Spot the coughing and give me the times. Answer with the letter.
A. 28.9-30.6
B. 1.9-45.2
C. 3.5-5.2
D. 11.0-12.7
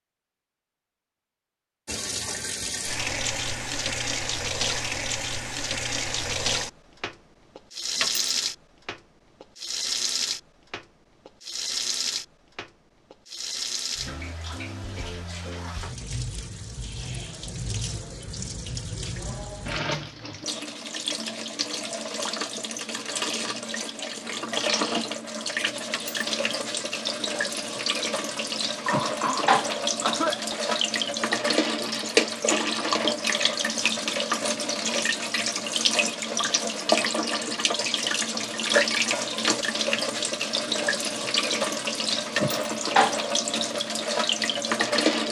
A.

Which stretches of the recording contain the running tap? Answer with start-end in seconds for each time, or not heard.
1.9-45.2.